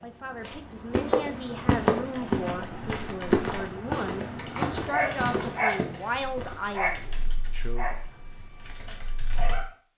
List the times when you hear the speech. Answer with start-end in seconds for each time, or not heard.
0.0-8.1.